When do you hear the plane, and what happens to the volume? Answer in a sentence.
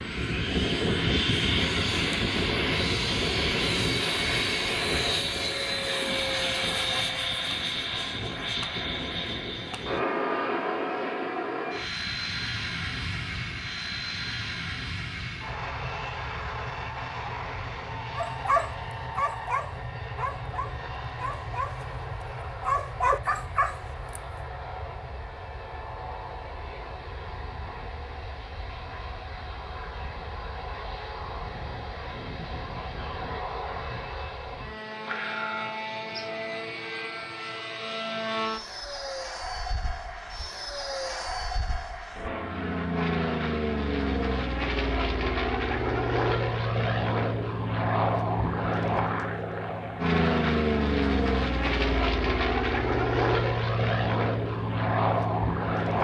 You can hear the plane from 0.0 to 56.0 s, getting quieter then louder.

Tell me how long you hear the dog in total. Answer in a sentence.
The dog can be heard for 5 seconds in total.